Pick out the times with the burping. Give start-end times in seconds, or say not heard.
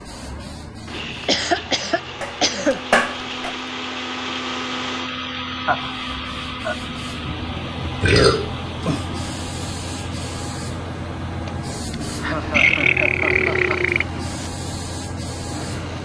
2.2-3.5, 8.0-9.1, 12.5-14.5.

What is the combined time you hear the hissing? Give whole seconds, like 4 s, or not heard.
16 s.